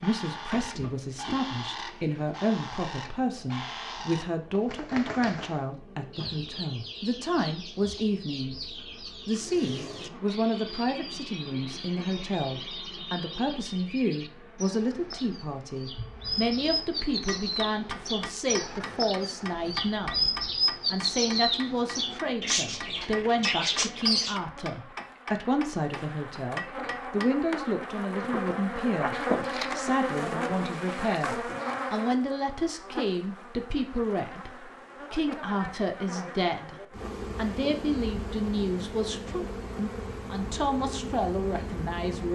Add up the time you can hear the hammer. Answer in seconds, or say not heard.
10 s.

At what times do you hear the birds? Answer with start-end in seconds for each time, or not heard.
0.0-24.4.